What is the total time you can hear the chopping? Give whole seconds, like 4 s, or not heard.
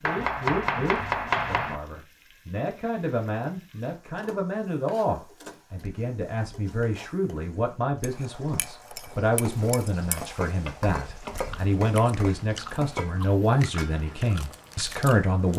3 s.